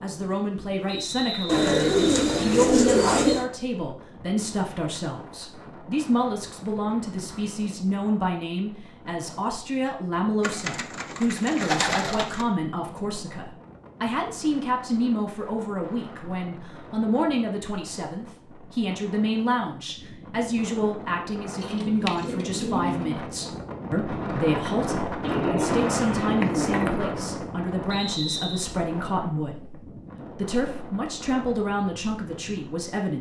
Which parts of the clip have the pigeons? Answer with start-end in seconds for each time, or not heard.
1.4-3.5, 10.4-12.4, 21.6-23.2, 25.2-27.1.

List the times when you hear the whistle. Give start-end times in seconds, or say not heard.
0.8-2.5, 27.9-28.6.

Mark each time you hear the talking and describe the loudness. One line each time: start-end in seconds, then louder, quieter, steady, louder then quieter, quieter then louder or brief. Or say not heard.
0.0-33.1 steady.